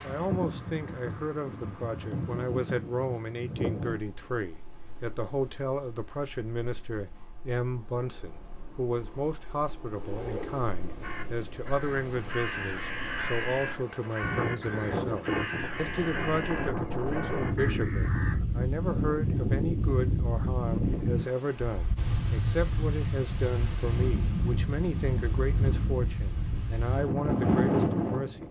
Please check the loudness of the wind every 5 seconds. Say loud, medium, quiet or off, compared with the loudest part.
medium, quiet, medium, loud, loud, loud.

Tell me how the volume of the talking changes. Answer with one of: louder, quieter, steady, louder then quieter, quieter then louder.
steady.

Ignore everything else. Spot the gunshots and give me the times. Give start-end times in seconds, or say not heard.
not heard.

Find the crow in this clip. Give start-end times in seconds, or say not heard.
11.0-18.4.